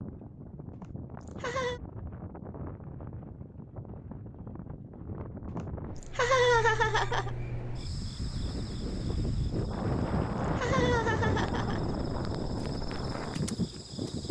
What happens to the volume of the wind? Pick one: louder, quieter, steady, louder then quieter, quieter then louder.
louder.